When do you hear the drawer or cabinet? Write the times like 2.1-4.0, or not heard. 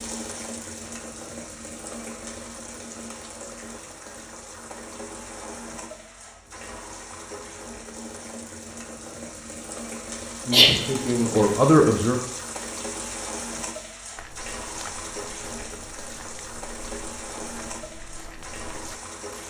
not heard.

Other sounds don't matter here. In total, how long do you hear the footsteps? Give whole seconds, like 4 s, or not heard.
5 s.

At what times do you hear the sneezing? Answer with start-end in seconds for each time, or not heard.
10.5-11.6.